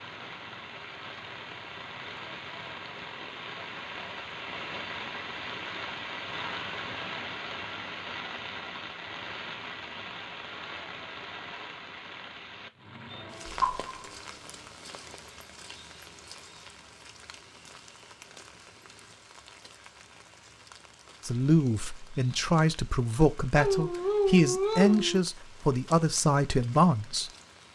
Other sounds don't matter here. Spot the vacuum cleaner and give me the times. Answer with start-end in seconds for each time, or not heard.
13.1-14.7.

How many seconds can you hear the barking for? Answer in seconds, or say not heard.
2 s.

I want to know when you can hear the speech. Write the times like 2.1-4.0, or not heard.
21.2-27.3.